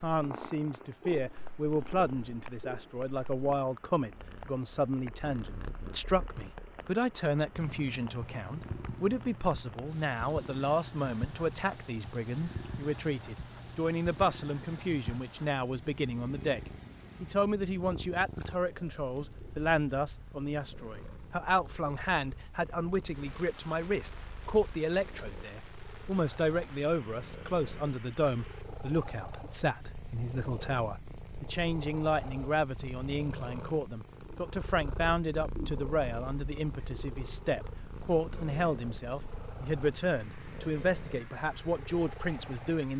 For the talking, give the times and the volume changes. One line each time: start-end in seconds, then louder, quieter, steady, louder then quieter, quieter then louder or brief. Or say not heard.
0.0-42.9 steady.